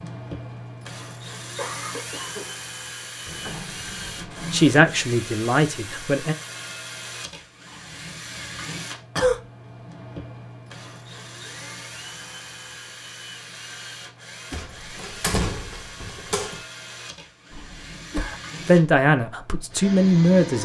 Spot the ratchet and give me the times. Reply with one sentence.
You can't hear the ratchet here.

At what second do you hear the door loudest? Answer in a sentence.
The volume of the door peaks at 15 seconds.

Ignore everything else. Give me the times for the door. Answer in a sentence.
The door can be heard from 3.2 to 4.8 s and from 14.5 to 16.6 s.